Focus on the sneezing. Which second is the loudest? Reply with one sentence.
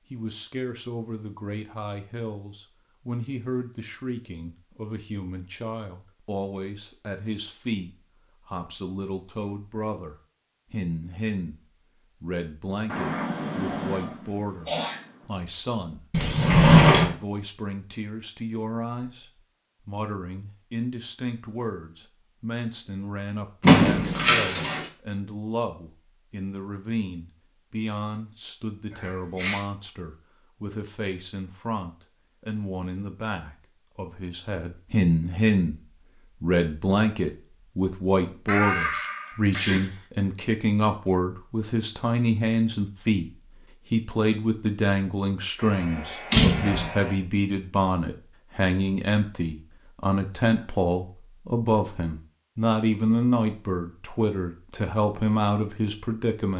The volume of the sneezing peaks at 39 seconds.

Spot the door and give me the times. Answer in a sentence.
The door can be heard from 16.1 to 17.1 s, from 23.6 to 24.9 s and from 46.3 to 46.9 s.